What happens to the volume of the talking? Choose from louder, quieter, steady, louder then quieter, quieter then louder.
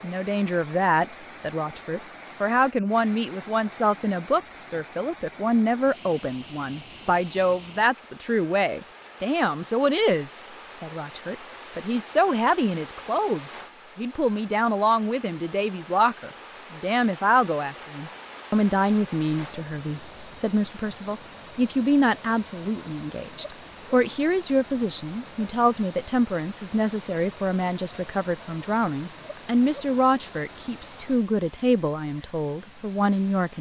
steady.